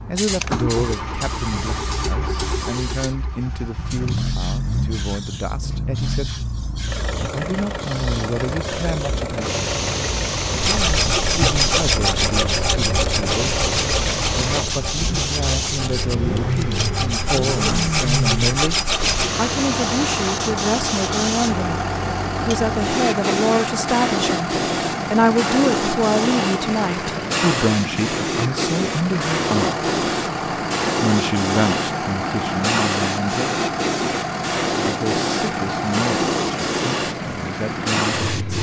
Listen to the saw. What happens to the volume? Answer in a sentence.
The volume of the saw goes down, then up.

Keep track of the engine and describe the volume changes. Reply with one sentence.
The volume of the engine stays about the same.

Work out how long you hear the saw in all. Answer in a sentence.
You can hear the saw for 9 seconds altogether.